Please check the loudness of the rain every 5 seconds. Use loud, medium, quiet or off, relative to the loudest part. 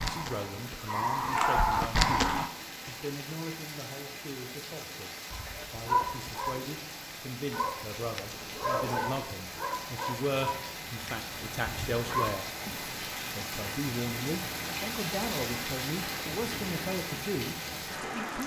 medium, medium, loud, loud.